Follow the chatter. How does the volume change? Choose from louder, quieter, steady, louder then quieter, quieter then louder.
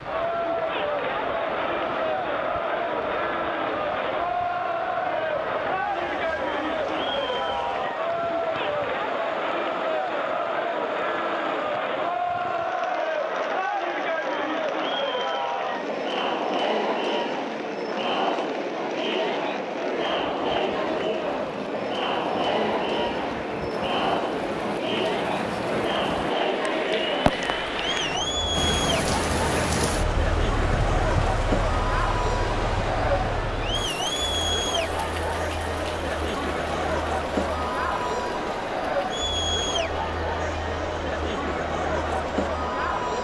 steady.